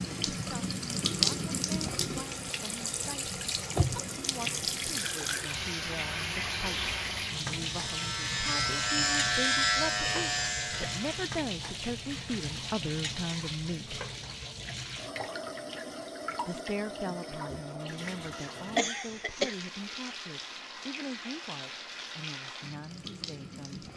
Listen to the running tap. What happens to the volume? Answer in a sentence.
The volume of the running tap goes down.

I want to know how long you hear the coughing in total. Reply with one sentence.
You can hear the coughing for 2 seconds altogether.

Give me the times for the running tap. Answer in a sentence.
You can hear the running tap from 0.0 to 23.9 s.